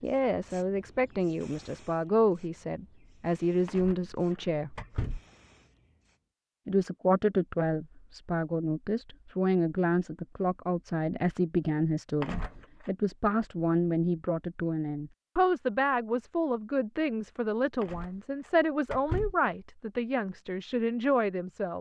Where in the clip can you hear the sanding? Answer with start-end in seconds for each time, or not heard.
not heard.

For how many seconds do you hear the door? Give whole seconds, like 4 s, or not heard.
4 s.